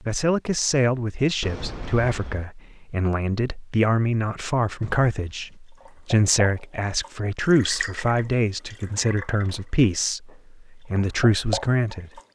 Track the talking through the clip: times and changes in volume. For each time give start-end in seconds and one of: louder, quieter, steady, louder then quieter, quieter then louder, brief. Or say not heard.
0.0-12.2 steady.